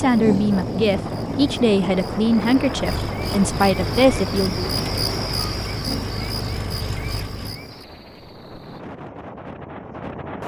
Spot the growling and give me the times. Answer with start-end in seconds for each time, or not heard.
0.1-1.6, 5.7-7.8.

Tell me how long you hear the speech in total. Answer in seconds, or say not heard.
5 s.